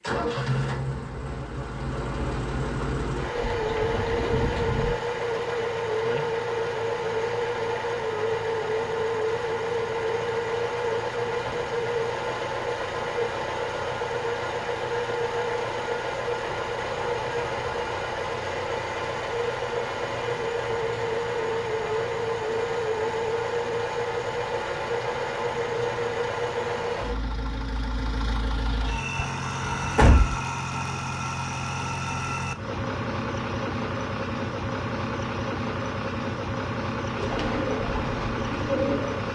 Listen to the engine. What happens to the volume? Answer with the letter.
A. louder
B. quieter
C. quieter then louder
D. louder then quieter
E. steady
E.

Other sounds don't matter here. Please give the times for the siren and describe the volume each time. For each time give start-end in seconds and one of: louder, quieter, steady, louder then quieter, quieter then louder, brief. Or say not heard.
not heard.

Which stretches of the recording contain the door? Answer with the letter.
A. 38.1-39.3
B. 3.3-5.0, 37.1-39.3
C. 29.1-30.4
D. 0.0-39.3
C.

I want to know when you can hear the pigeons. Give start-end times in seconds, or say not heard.
3.3-5.0, 37.1-39.3.